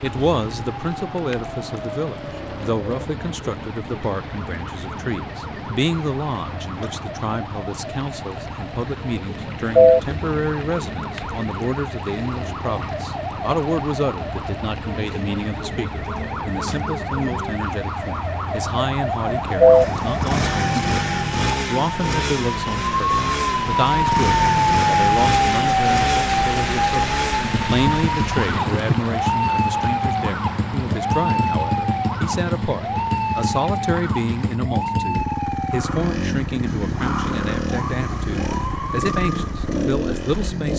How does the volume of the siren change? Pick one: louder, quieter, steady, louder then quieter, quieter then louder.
louder then quieter.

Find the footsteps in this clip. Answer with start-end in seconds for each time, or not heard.
not heard.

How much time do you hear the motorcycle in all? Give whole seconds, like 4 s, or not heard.
41 s.